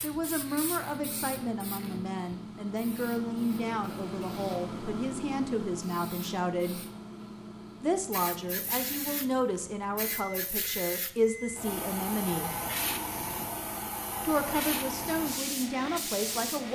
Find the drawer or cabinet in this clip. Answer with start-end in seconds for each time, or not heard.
not heard.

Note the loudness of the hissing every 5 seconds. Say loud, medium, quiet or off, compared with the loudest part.
medium, medium, loud, loud.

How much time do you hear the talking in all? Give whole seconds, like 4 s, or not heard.
14 s.